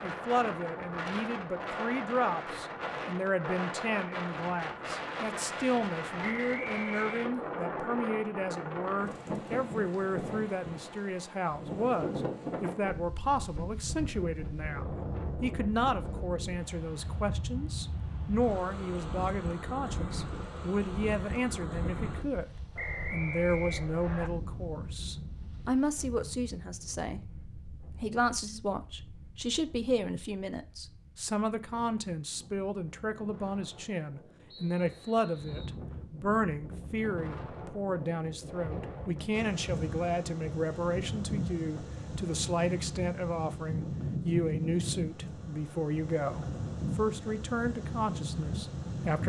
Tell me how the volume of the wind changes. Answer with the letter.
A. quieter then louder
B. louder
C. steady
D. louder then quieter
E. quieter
A.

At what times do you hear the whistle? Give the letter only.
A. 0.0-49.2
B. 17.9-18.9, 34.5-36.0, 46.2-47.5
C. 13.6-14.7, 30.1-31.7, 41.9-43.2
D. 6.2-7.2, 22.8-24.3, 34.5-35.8
D.